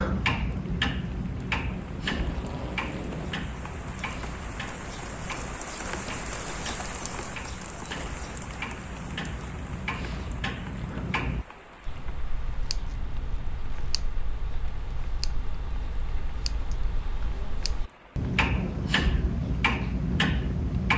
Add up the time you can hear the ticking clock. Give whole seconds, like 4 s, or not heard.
21 s.